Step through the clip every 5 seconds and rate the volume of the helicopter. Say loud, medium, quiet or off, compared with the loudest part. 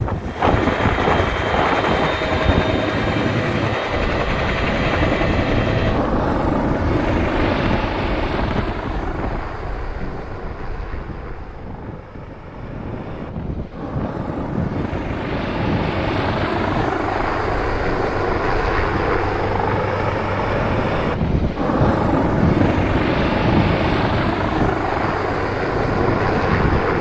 loud, loud, quiet, loud, loud, loud.